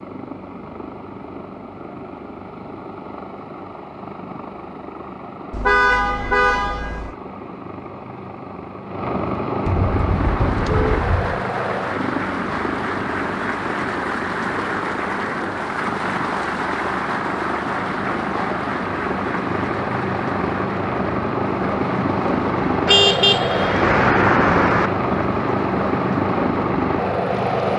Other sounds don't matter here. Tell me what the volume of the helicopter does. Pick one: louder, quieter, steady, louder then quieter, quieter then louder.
louder.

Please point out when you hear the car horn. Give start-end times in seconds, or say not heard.
5.5-7.1, 9.7-11.4, 22.9-24.9.